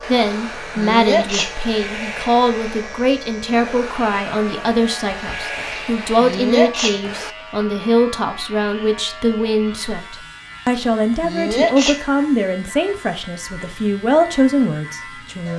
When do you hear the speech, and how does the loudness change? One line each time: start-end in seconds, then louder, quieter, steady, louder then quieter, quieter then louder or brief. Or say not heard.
0.1-15.5 steady.